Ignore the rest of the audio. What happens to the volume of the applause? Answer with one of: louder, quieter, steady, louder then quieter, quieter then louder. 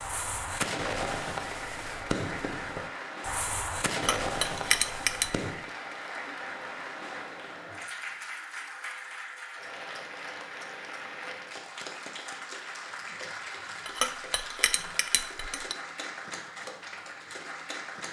steady.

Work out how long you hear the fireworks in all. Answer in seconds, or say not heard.
6 s.